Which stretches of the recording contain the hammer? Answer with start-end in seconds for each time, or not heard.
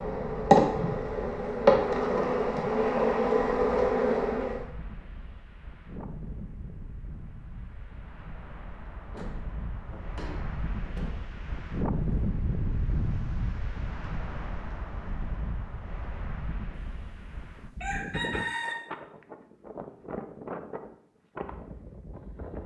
not heard.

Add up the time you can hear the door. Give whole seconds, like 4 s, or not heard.
2 s.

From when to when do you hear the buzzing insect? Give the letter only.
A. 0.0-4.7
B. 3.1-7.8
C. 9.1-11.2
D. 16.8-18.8
A.